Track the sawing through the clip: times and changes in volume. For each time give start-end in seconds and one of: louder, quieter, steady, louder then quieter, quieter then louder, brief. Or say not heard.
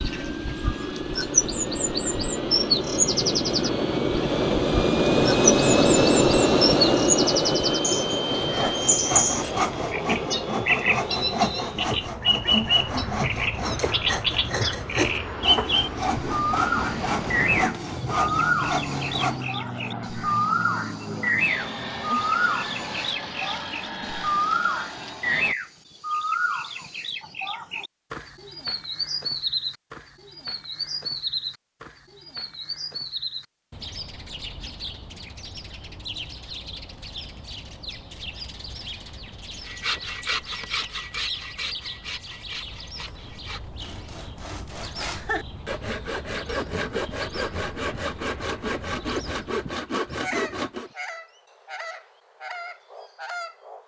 8.2-19.5 steady
39.6-50.9 quieter then louder.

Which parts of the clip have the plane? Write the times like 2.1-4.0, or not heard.
0.0-25.6.